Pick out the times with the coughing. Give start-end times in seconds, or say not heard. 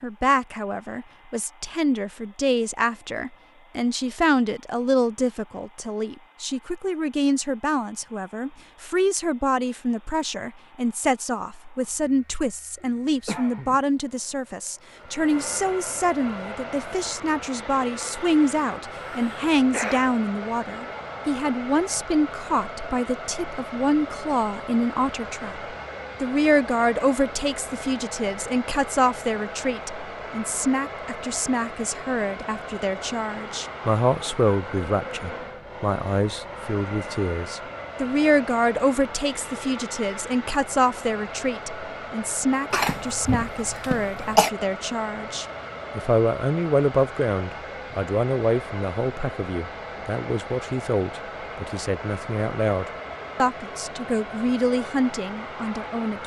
12.8-13.8, 18.9-20.1, 42.7-44.5.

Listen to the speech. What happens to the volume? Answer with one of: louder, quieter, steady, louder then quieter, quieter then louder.
steady.